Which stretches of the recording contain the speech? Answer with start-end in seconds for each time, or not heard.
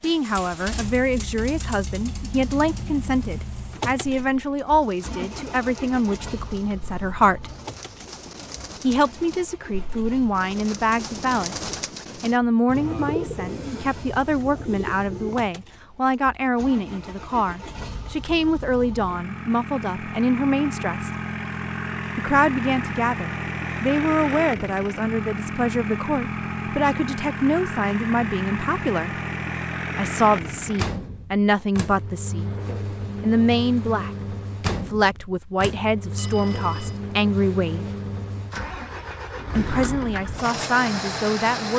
0.0-7.5, 8.8-21.1, 22.1-29.1, 29.9-32.5, 33.2-37.9, 39.5-41.7.